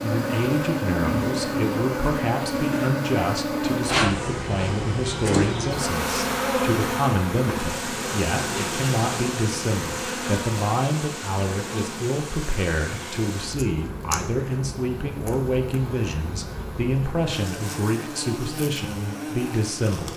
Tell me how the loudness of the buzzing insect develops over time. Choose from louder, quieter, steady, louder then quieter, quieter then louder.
quieter.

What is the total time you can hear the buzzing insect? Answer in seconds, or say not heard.
20 s.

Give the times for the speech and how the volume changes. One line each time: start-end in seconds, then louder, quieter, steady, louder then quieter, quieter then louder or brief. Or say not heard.
0.0-20.1 steady.